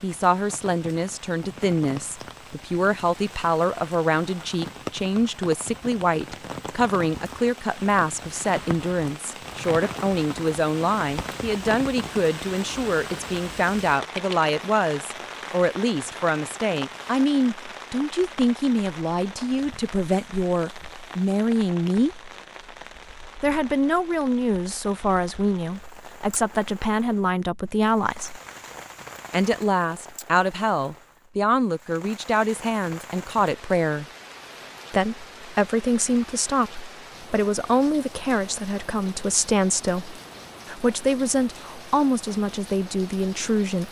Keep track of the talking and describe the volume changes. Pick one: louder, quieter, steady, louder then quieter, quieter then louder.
steady.